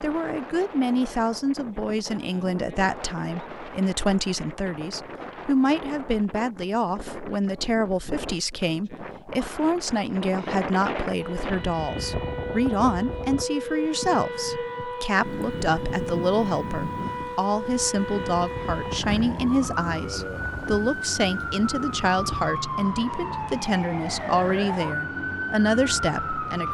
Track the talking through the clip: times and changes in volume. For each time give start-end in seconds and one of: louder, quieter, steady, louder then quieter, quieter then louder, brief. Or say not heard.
0.0-26.6 steady.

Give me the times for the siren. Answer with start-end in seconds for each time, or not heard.
11.2-26.6.